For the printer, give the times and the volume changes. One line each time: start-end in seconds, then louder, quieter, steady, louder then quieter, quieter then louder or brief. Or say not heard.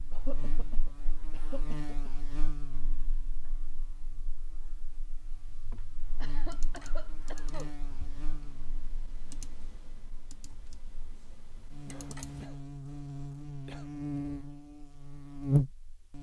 not heard.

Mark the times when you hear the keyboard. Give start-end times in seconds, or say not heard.
6.5-12.5.